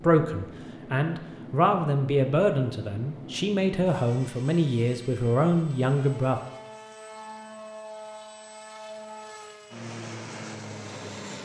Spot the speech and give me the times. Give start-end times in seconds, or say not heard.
0.0-6.4.